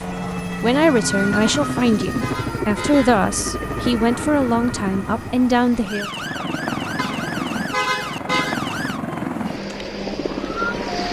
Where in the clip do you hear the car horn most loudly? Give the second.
8 s.